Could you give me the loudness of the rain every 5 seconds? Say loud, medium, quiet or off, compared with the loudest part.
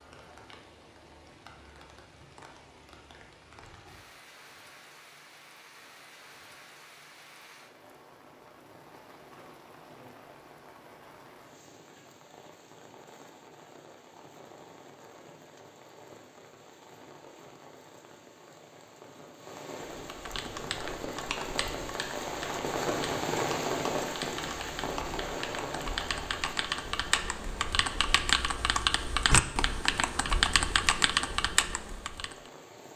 quiet, quiet, quiet, quiet, loud, medium, quiet.